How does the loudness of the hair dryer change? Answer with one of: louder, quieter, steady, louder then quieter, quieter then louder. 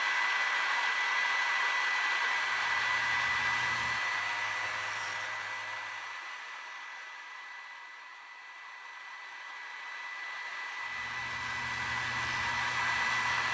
quieter then louder.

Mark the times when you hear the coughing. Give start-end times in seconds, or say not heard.
not heard.